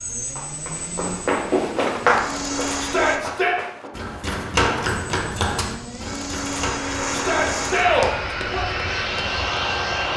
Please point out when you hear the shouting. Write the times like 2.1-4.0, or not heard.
2.8-3.5, 7.1-8.7.